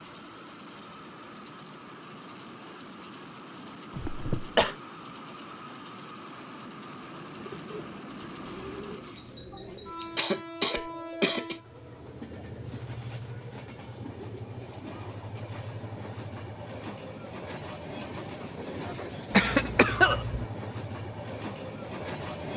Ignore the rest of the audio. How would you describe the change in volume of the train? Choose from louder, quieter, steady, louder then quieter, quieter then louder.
louder.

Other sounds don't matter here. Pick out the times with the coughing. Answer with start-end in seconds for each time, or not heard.
4.0-4.8, 10.0-11.6, 19.3-20.4.